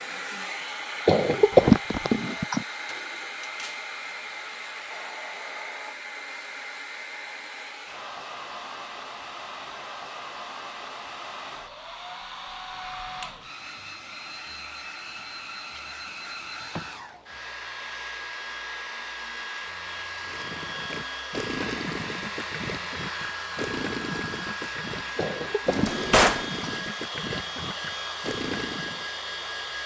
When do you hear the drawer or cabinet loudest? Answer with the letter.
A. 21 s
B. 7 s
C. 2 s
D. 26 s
D.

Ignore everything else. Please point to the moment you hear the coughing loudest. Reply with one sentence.
The volume of the coughing peaks at 2 seconds.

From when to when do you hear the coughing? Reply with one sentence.
You can hear the coughing from 1.1 to 2.6 s and from 25.1 to 26.8 s.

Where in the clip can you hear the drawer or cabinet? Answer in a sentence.
You can hear the drawer or cabinet from 2.9 to 3.8 s and from 25.6 to 26.4 s.